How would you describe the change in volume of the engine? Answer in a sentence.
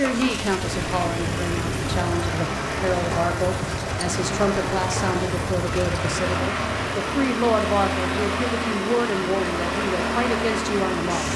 The loudness of the engine stays about the same.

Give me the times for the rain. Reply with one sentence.
The rain can be heard from 0.0 to 11.3 s.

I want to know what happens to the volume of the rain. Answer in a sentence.
The volume of the rain stays about the same.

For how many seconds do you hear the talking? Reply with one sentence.
The talking can be heard for 11 seconds in total.